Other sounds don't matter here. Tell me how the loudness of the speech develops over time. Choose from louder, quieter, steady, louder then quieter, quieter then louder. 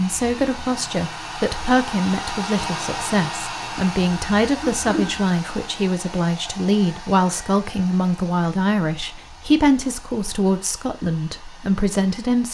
steady.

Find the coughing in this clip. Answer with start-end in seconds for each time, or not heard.
4.6-5.2.